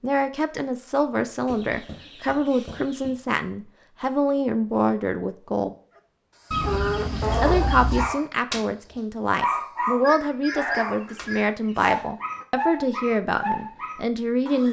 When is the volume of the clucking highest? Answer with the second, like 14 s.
7 s.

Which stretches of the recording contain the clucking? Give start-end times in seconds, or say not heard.
1.4-3.1, 6.5-8.1, 10.0-12.0.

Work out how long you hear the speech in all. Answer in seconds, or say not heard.
13 s.